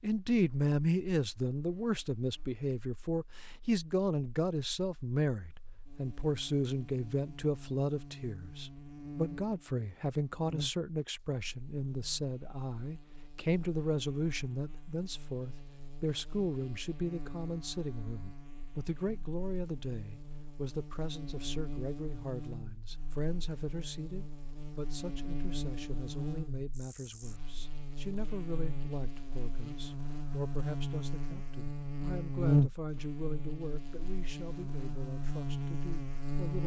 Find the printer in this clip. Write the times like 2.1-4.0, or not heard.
not heard.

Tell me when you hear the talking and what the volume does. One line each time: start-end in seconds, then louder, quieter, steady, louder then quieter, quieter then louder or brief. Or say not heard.
0.0-36.6 quieter.